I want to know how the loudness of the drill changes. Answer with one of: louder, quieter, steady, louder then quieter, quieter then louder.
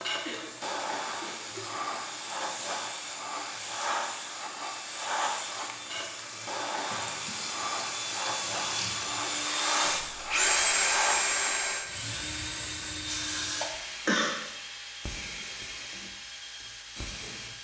louder then quieter.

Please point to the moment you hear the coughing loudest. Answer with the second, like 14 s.
14 s.